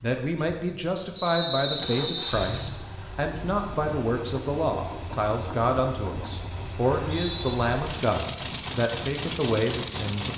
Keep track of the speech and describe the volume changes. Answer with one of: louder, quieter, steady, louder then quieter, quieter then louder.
steady.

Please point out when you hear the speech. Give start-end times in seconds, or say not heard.
0.0-10.3.